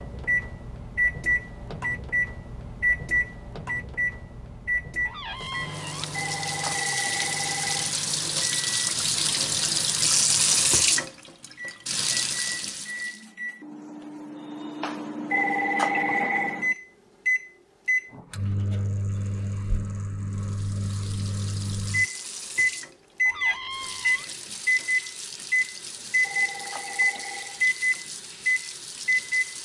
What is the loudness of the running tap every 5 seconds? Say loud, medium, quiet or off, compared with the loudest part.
off, loud, loud, off, quiet, quiet.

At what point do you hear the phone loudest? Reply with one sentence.
The volume of the phone peaks at 16 seconds.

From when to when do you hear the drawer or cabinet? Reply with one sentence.
You can hear the drawer or cabinet from 5.0 to 6.0 s and from 23.2 to 24.2 s.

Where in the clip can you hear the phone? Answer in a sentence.
You can hear the phone from 6.1 to 8.0 s, from 15.3 to 16.6 s and from 26.2 to 27.6 s.